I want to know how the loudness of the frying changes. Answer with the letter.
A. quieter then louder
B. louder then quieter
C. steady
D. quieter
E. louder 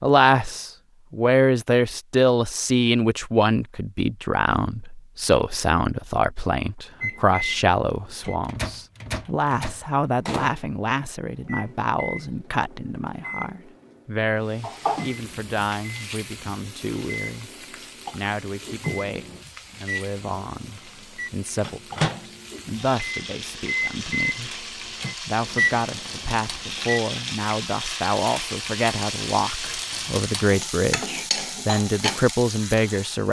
A.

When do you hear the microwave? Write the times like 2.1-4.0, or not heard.
7.0-27.0.